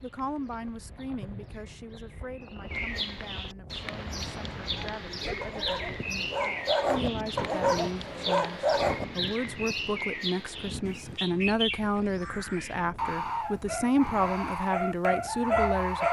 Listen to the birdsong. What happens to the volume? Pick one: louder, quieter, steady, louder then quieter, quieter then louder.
louder.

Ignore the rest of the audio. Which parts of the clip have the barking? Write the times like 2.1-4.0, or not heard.
4.8-9.1, 13.4-16.0.